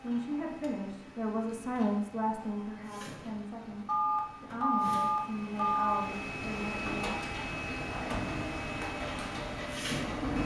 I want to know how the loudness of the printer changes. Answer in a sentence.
The loudness of the printer goes up.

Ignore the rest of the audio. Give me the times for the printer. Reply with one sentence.
You can hear the printer from 0.0 to 10.4 s.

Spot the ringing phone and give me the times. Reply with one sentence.
The ringing phone can be heard from 3.9 to 6.1 s.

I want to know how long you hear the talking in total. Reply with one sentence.
You can hear the talking for 7 seconds altogether.